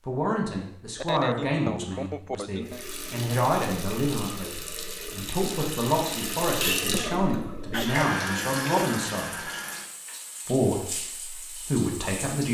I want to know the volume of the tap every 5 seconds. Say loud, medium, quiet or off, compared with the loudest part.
medium, loud, medium.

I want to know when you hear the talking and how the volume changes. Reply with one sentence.
You can hear the talking from 0.1 to 9.4 s, at a steady volume; and briefly from 10.4 to 12.4 s.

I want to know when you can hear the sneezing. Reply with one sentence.
You can hear the sneezing from 0.9 to 2.9 s and from 6.9 to 8.1 s.